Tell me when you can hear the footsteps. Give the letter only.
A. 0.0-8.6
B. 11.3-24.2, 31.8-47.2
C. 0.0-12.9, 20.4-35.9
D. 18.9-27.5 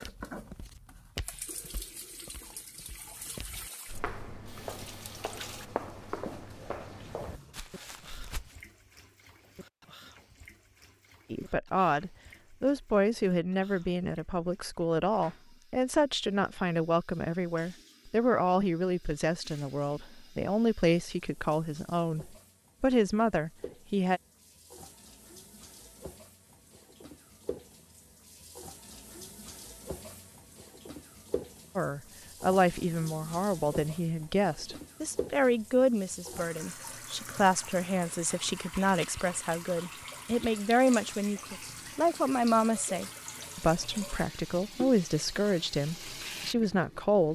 A.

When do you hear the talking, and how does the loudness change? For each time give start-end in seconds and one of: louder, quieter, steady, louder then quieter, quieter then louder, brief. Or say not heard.
11.3-24.2 steady
31.8-47.2 steady.